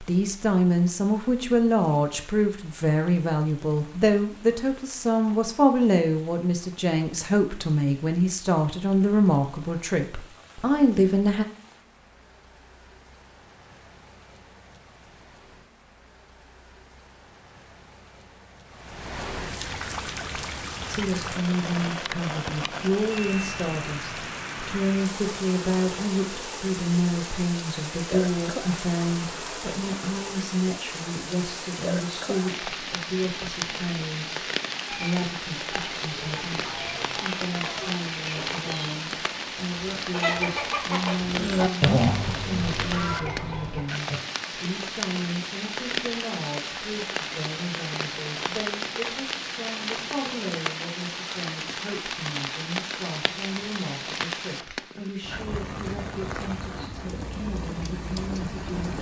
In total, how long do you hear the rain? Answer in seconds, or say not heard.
59 s.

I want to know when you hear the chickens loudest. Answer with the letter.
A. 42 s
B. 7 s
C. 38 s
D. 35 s
A.